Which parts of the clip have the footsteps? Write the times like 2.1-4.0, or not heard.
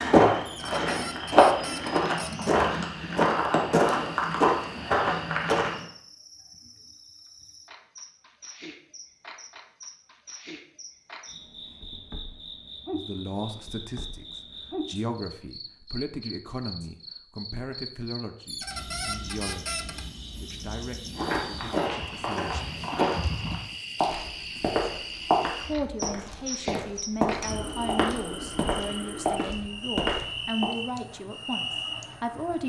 0.0-5.8, 21.1-30.7.